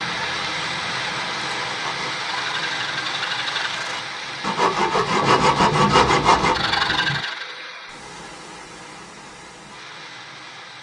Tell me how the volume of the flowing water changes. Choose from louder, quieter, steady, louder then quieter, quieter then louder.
quieter.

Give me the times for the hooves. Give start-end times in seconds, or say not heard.
not heard.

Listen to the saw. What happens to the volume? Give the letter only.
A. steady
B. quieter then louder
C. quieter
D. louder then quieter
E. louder
E.